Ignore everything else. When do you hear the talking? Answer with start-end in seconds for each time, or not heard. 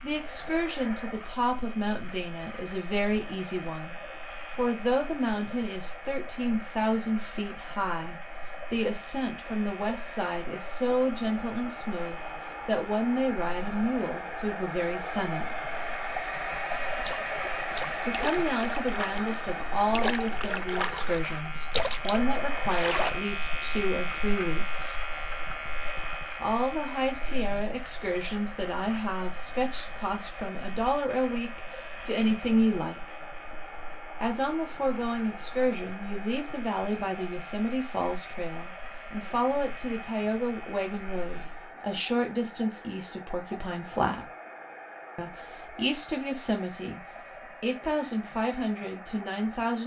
0.0-15.6, 18.1-25.0, 26.4-33.1, 34.2-44.3, 45.1-49.8.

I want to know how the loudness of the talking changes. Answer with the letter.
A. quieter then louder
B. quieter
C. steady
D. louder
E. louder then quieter
C.